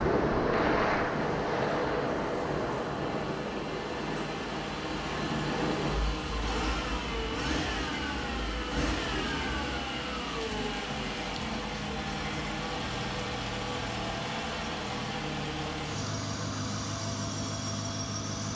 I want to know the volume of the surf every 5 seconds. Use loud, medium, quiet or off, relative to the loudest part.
loud, medium, off, off.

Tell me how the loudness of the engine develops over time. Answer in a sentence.
The volume of the engine goes up.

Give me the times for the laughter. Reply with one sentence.
You can't hear the laughter here.